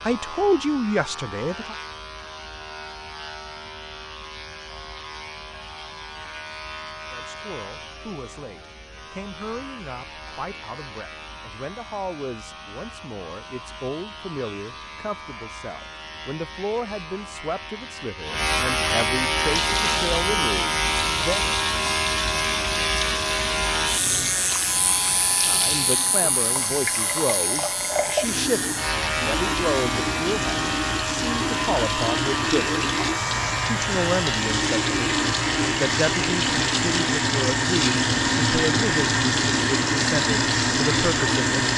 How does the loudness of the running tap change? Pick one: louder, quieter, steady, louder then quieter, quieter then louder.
louder.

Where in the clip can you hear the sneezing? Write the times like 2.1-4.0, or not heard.
not heard.